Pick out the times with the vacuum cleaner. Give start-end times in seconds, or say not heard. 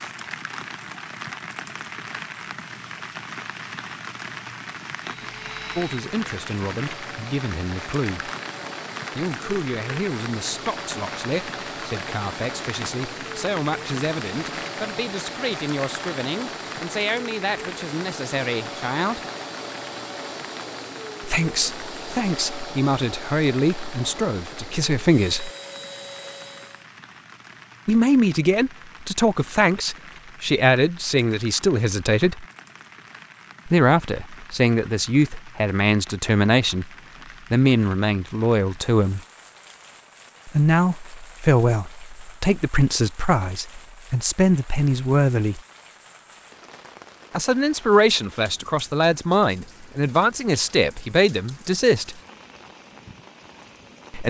5.1-26.9.